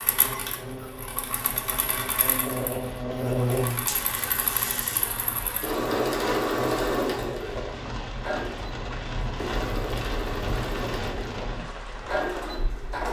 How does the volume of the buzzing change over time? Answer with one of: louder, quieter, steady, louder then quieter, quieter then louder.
louder then quieter.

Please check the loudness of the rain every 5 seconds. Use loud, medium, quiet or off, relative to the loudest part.
medium, loud, loud.